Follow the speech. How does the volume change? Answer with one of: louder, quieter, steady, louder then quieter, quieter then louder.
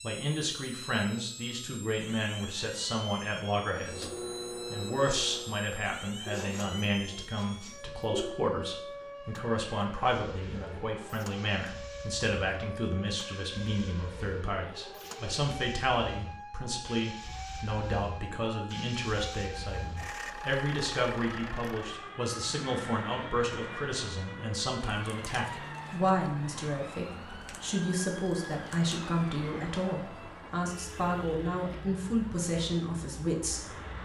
steady.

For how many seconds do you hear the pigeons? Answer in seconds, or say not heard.
2 s.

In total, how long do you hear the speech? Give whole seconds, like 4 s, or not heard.
34 s.